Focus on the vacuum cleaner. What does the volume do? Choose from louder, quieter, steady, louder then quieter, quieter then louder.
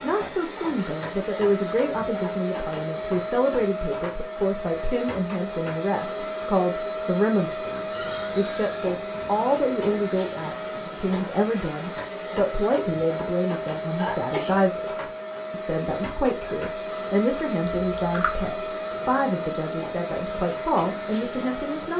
steady.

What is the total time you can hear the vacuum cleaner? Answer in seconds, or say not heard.
22 s.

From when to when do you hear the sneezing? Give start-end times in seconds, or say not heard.
13.9-14.7.